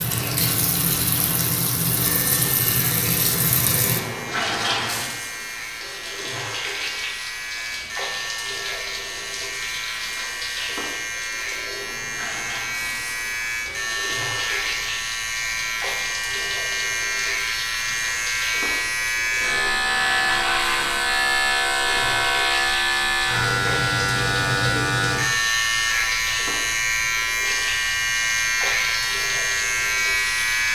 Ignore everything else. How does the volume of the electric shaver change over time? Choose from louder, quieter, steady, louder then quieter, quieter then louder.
louder.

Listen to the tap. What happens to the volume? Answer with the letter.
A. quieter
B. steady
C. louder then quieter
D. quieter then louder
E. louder
A.